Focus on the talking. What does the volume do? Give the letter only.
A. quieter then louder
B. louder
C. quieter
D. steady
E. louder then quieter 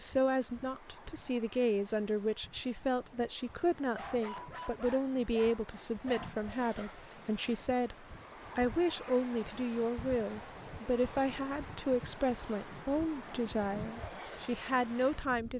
D.